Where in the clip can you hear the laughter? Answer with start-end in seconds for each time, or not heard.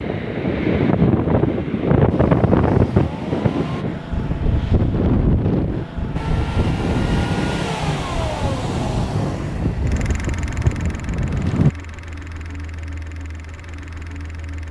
not heard.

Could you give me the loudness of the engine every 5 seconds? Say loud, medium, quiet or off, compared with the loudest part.
medium, loud, medium.